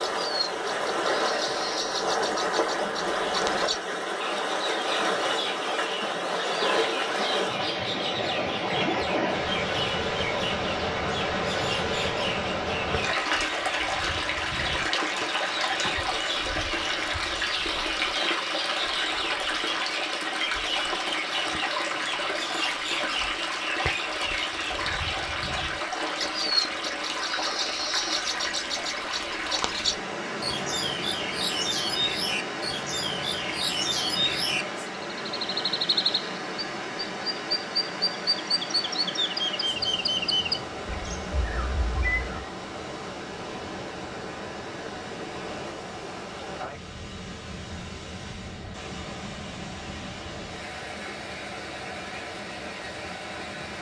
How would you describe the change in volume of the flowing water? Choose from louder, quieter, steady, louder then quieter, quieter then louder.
quieter.